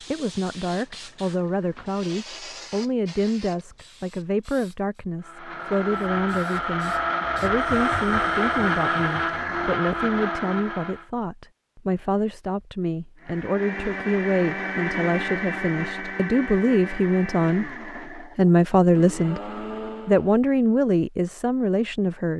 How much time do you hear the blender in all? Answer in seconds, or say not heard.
13 s.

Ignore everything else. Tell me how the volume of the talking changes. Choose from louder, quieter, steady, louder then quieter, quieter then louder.
louder.